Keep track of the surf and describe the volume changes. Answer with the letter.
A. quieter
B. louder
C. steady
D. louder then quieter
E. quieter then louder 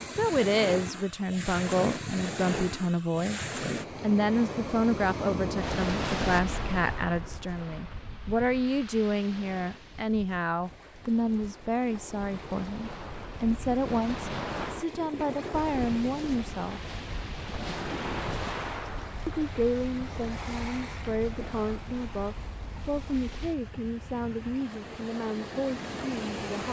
A.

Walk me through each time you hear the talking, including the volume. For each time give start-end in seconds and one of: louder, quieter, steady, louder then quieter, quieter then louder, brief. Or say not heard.
0.1-16.9 steady
19.2-26.6 steady.